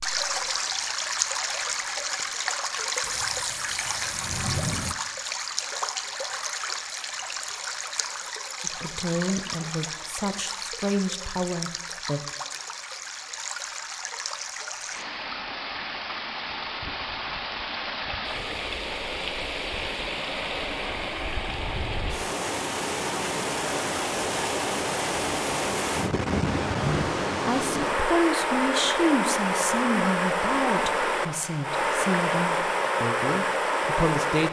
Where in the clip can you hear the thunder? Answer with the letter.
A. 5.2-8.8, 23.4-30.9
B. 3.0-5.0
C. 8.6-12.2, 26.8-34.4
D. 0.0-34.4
B.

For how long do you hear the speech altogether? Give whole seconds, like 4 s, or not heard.
11 s.